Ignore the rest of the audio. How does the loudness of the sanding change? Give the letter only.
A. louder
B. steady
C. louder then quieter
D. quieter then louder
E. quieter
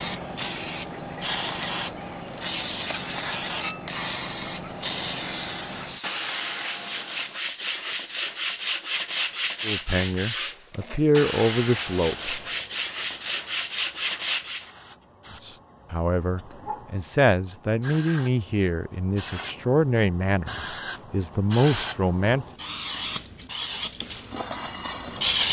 B.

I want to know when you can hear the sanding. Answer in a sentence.
You can hear the sanding from 6.0 to 14.7 s.